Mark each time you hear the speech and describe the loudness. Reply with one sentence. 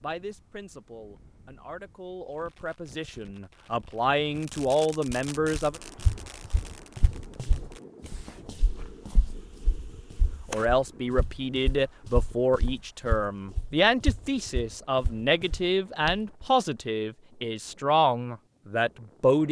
The speech can be heard from 0.0 to 5.8 s, getting louder; and from 10.5 to 19.4 s, at a steady volume.